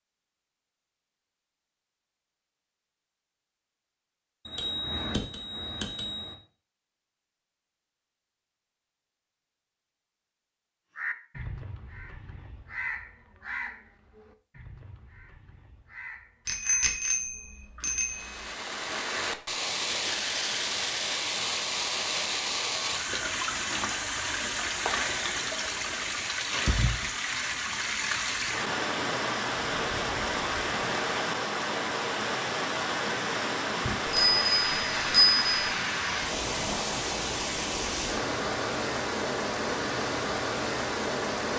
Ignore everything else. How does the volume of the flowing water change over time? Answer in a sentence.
The loudness of the flowing water stays about the same.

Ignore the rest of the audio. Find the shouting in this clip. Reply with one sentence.
The shouting can't be heard in this clip.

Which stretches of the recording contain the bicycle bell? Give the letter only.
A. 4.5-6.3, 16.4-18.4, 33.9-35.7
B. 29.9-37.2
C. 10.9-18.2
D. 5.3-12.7
A.